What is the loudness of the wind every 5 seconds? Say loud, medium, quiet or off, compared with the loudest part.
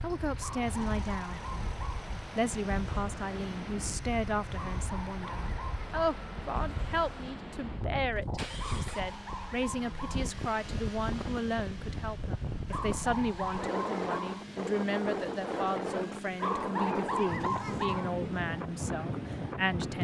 medium, medium, loud, loud.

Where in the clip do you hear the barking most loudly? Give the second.
17 s.